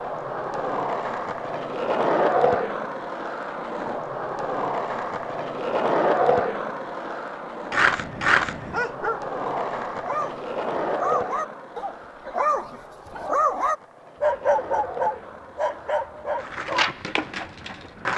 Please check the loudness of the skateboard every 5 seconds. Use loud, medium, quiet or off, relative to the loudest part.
loud, loud, medium, medium.